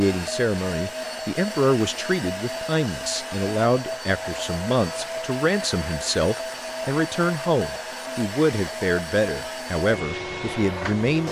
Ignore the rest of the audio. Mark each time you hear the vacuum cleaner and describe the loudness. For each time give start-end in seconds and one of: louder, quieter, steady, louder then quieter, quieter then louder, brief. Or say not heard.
0.0-11.2 steady.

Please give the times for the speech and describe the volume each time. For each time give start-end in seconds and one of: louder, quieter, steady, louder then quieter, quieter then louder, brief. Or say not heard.
0.0-11.2 steady.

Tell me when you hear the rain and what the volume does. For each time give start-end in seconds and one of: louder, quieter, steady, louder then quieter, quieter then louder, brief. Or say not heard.
not heard.